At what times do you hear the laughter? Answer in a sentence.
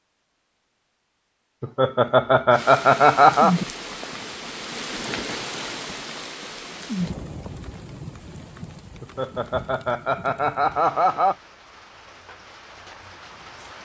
The laughter can be heard from 1.6 to 3.5 s and from 9.0 to 11.3 s.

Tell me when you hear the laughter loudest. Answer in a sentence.
The loudest moment of the laughter is at 3 seconds.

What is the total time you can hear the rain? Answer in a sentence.
You can hear the rain for 11 seconds altogether.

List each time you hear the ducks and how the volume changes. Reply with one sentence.
You can't hear the ducks here.